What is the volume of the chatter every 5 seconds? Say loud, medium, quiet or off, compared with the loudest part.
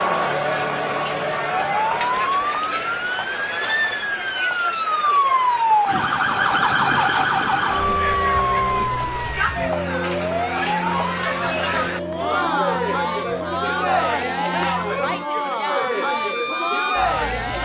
loud, medium, loud, loud.